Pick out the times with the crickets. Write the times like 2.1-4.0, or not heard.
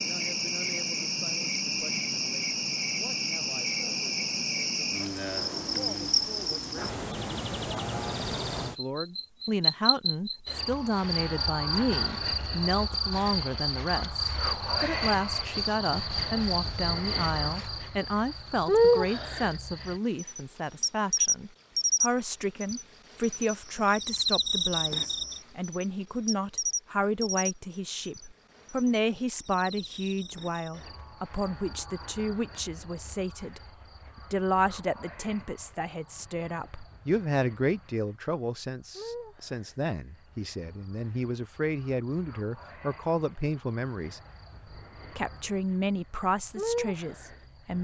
0.0-47.7.